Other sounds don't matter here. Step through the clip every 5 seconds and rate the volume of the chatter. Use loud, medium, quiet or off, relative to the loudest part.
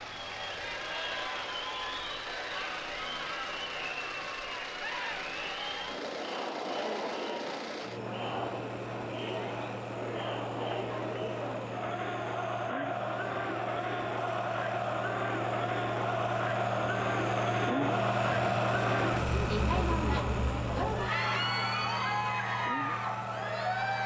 medium, medium, loud, loud, loud.